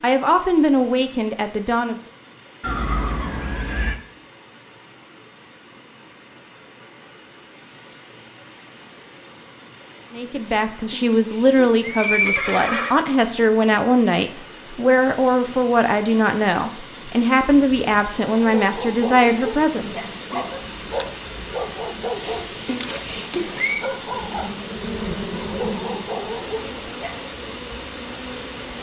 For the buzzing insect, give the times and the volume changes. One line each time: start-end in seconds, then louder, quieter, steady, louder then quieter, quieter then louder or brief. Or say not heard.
19.6-28.7 louder then quieter.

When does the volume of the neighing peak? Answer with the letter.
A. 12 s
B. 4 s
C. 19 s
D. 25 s
A.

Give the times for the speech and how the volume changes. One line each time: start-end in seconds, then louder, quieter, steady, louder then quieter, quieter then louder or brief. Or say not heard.
0.0-1.9 brief
10.1-20.4 steady.